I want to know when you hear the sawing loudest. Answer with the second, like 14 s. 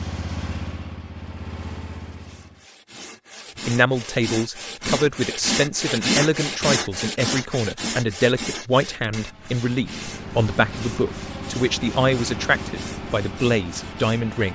6 s.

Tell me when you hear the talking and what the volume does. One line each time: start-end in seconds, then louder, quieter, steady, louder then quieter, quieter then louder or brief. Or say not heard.
3.6-14.4 steady.